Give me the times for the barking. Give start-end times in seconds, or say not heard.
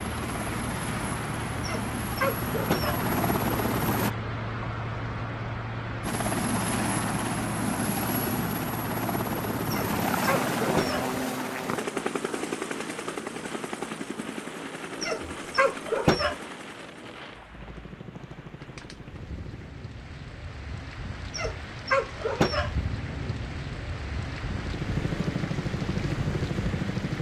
1.6-3.0, 9.7-11.2, 15.0-16.4, 21.3-22.9.